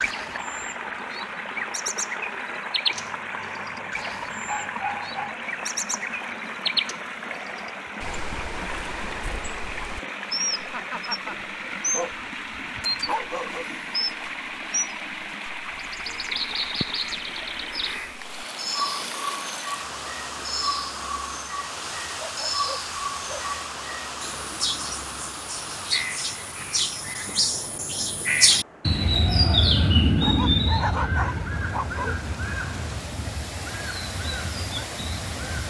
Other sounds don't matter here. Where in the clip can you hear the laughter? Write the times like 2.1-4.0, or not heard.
10.6-11.3.